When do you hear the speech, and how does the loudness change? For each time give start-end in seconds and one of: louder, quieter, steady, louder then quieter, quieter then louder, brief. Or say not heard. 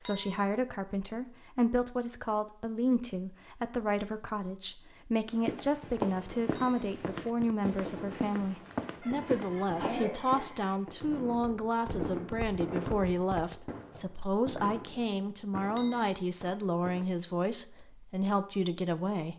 0.0-19.3 steady.